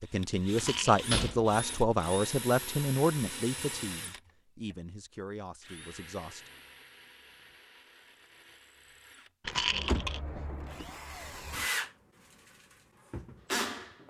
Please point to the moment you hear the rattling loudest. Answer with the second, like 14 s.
10 s.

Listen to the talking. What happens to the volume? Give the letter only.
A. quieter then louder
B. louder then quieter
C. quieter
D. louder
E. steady
C.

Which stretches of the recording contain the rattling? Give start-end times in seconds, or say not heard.
0.6-1.1, 9.4-10.2.